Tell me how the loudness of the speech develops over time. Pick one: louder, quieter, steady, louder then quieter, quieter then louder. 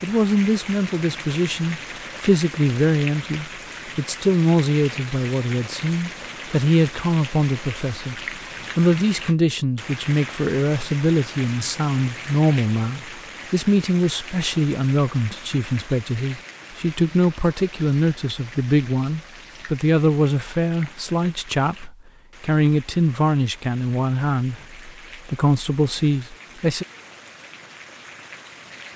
steady.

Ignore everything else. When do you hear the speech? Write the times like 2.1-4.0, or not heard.
0.0-26.9.